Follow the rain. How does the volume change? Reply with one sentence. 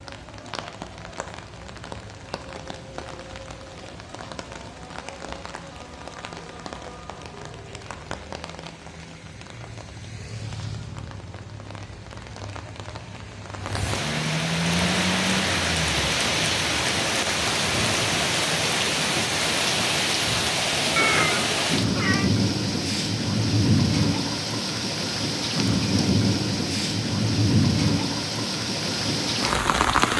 The volume of the rain goes up.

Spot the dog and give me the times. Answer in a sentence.
You can't hear the dog here.